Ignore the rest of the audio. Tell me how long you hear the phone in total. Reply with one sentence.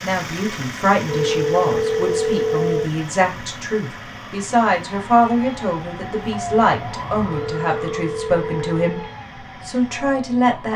You can hear the phone for 4 seconds altogether.